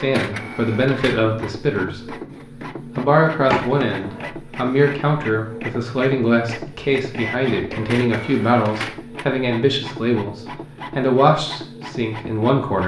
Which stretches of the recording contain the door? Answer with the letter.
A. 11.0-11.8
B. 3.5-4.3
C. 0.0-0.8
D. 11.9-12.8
B.